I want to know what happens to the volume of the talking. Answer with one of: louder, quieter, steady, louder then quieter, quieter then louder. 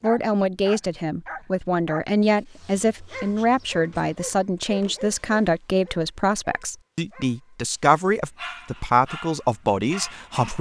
steady.